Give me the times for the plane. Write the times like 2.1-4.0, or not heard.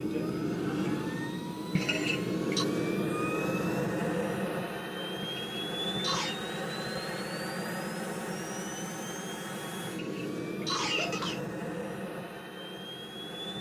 0.0-13.5.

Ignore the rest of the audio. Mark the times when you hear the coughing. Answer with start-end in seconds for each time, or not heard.
1.8-2.6, 5.2-6.3, 9.8-11.4.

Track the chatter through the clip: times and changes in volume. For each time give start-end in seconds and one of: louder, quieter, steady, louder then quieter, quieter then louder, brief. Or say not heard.
not heard.